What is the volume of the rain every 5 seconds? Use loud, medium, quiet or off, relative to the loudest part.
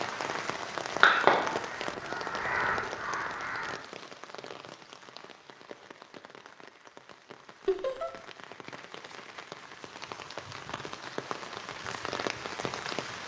loud, medium, loud.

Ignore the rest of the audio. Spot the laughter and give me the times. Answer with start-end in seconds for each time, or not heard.
7.7-8.1.